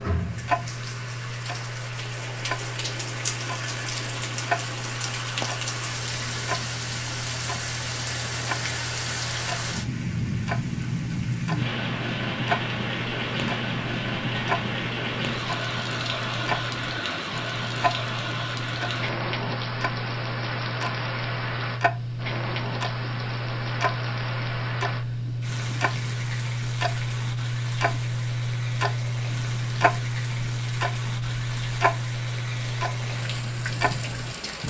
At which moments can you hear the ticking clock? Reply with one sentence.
The ticking clock can be heard from 0.1 to 34.4 s.